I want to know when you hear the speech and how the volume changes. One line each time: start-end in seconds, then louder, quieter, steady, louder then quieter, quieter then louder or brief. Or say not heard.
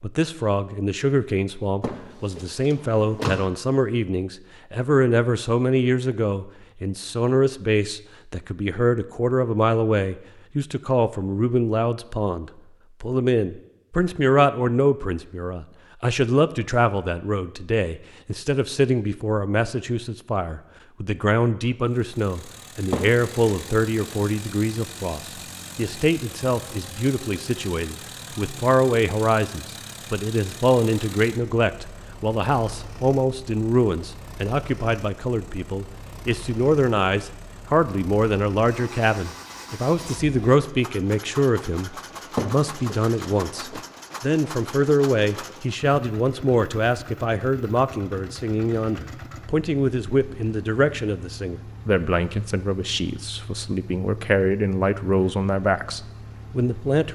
0.0-57.1 steady.